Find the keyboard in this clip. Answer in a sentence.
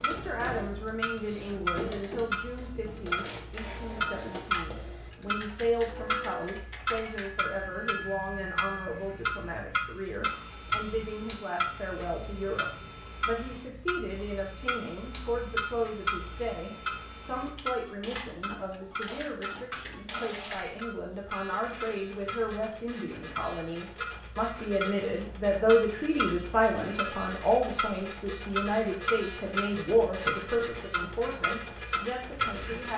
You can hear the keyboard from 4.5 to 7.3 s and from 18.1 to 20.9 s.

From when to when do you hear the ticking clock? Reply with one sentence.
The ticking clock can be heard from 0.0 to 32.9 s.